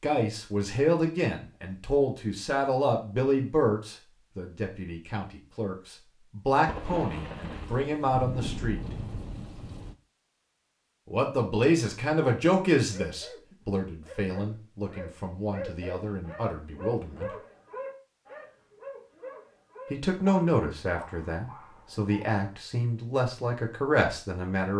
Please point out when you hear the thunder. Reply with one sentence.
The thunder can be heard from 6.7 to 9.9 s.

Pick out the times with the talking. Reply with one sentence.
The talking can be heard from 0.0 to 8.8 s, from 11.1 to 17.3 s and from 19.9 to 24.7 s.